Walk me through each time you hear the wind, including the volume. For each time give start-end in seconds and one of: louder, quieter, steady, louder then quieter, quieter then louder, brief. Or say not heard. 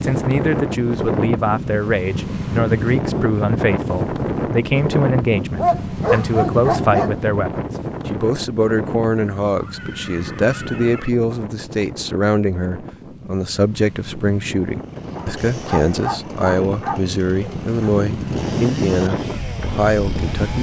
0.0-20.5 quieter then louder.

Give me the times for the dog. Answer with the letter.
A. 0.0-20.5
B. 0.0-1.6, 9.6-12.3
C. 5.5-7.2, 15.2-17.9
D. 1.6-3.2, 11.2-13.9
C.